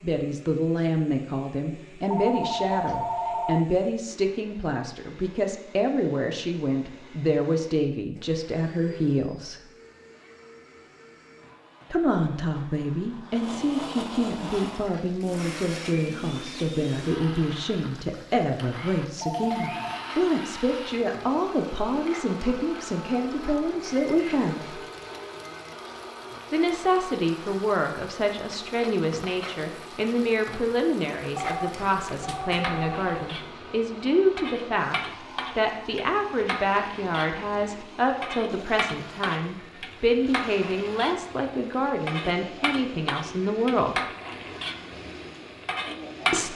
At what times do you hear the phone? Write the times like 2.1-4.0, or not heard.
2.1-3.6, 19.2-20.1, 31.4-33.4.